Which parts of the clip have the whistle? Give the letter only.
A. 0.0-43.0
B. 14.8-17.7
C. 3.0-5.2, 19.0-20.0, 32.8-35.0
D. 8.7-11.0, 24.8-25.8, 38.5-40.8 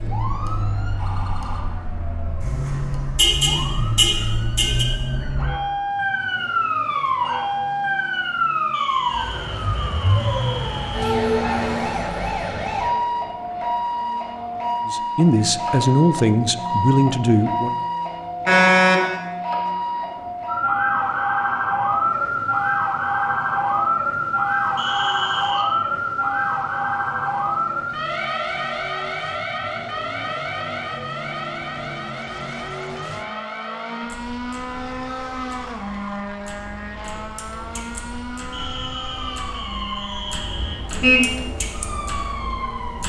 D.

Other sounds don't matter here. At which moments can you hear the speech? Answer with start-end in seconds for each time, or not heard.
14.8-17.7.